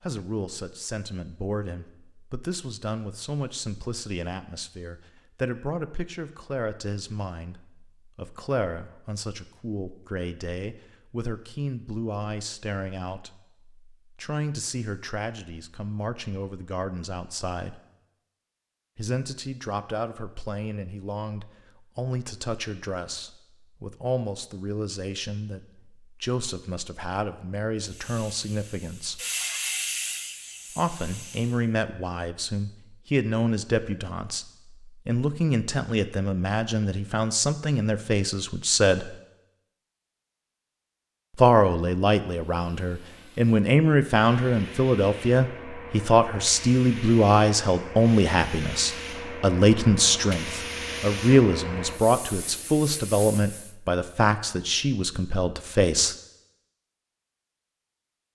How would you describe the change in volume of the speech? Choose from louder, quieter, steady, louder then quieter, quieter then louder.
louder.